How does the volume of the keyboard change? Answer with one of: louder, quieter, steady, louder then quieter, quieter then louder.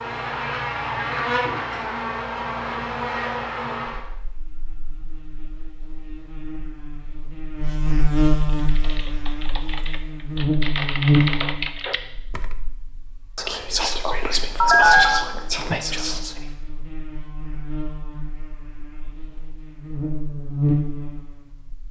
louder.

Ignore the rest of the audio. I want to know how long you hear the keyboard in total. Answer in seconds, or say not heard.
4 s.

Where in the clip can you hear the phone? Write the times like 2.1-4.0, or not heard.
14.6-15.2.